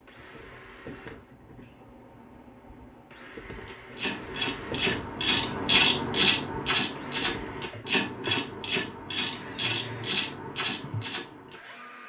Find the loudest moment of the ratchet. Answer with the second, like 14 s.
6 s.